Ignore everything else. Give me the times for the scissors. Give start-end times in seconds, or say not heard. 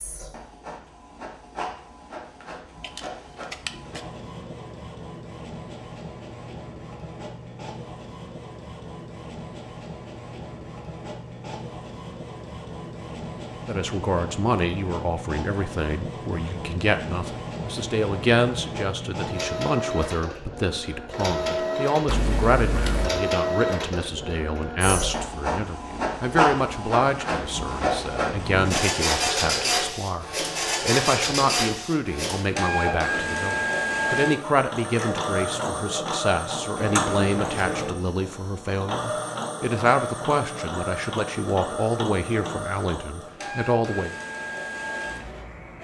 2.8-4.0, 22.1-23.1, 36.8-37.9.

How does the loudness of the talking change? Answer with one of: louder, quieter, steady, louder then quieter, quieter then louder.
steady.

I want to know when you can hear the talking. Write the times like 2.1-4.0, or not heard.
13.7-44.1.